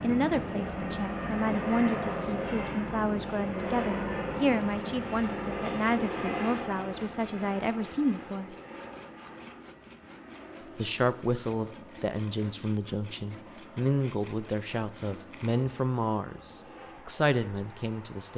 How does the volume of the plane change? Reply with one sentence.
The loudness of the plane goes down.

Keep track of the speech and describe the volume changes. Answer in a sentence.
The loudness of the speech stays about the same.